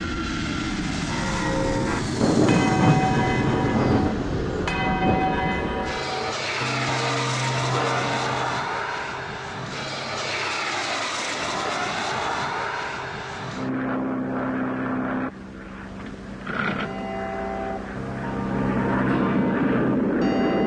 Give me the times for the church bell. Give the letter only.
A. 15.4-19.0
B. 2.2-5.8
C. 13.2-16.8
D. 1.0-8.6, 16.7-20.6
D.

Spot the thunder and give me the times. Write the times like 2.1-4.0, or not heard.
2.2-5.8.